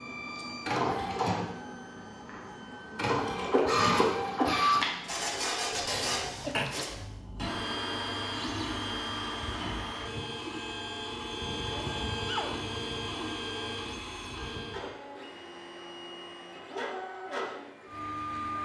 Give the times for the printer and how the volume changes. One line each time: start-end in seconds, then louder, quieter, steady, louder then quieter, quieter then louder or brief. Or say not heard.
0.0-18.5 quieter.